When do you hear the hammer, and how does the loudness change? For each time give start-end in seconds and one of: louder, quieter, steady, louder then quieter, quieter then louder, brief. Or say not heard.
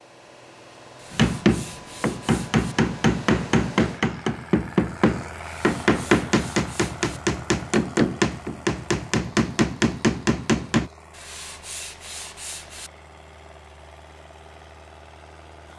1.1-10.9 steady.